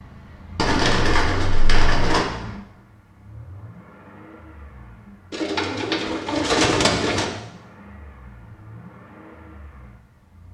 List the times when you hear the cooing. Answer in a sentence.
The cooing can be heard from 0.6 to 2.2 s and from 5.3 to 7.2 s.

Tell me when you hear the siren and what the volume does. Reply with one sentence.
The siren can't be heard in this clip.